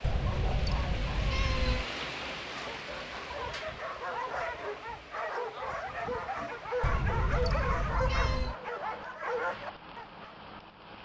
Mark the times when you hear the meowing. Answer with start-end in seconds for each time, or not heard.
0.0-1.9, 6.8-8.6.